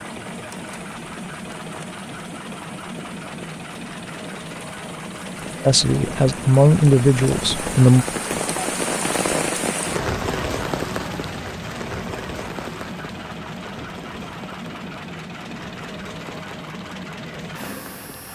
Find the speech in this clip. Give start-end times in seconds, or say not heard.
5.7-8.1.